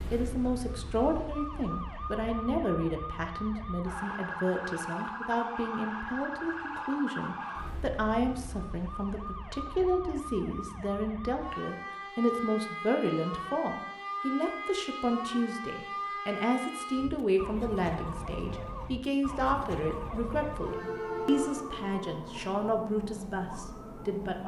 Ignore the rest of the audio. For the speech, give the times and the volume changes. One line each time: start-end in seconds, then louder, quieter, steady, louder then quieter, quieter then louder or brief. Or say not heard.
0.1-24.4 steady.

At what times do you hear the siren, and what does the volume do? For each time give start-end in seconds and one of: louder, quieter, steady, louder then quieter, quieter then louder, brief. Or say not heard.
0.0-24.4 steady.